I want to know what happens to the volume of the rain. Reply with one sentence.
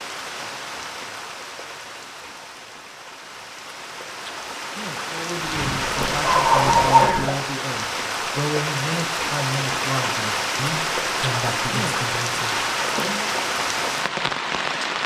The loudness of the rain goes up.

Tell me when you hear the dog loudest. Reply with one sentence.
The volume of the dog peaks at 7 seconds.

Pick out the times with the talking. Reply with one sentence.
The talking can be heard from 5.0 to 13.4 s.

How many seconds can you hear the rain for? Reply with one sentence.
The rain can be heard for 15 seconds in total.